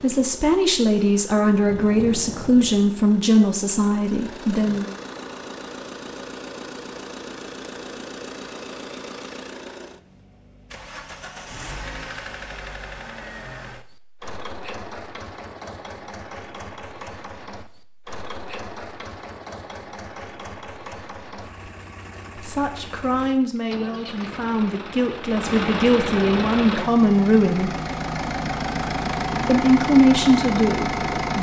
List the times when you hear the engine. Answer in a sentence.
The engine can be heard from 0.0 to 31.3 s.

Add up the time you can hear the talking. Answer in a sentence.
The talking can be heard for 12 seconds in total.